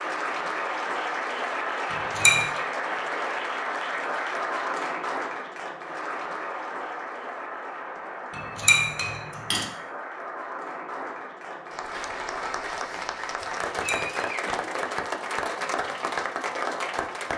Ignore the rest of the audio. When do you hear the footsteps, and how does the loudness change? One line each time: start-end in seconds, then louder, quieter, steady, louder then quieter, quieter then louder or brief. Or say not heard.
not heard.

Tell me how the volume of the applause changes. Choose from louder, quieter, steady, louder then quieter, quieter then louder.
quieter then louder.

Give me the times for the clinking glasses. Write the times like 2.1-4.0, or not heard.
1.9-2.5, 8.3-9.7, 13.6-14.2.